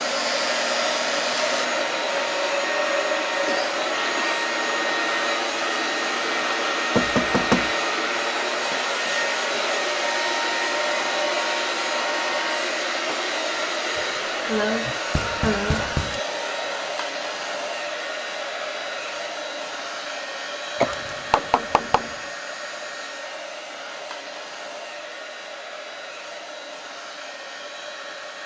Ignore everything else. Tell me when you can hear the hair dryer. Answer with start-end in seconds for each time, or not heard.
0.0-28.4.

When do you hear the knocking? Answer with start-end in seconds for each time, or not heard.
7.0-7.7, 15.1-16.2, 21.1-22.1.